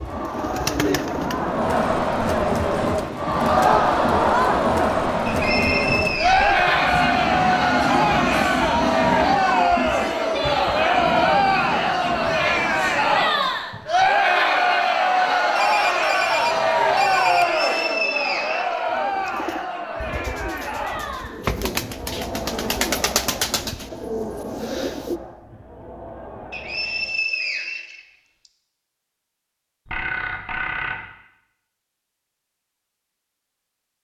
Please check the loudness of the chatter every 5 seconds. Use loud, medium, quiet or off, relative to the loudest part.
loud, loud, loud, loud, quiet, quiet, off.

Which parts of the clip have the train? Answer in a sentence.
You can hear the train from 0.0 to 13.3 s.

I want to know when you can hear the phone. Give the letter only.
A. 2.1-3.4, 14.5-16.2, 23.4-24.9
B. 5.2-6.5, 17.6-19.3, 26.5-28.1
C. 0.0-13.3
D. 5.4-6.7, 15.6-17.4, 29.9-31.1
D.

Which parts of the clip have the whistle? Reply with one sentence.
You can hear the whistle from 5.2 to 6.5 s, from 17.6 to 19.3 s and from 26.5 to 28.1 s.